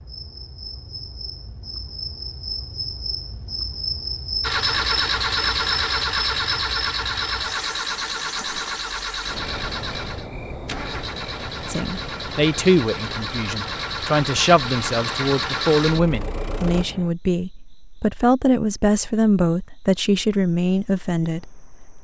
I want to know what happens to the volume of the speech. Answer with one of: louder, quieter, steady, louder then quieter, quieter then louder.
steady.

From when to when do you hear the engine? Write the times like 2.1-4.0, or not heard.
4.4-16.9.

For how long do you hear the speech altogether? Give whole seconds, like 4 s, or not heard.
10 s.